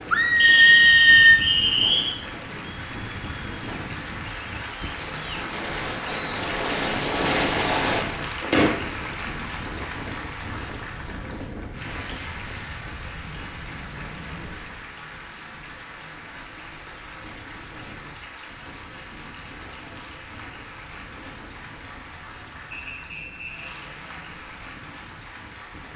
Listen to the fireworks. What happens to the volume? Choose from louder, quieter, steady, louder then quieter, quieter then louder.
louder.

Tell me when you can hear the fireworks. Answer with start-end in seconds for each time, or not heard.
2.5-8.7.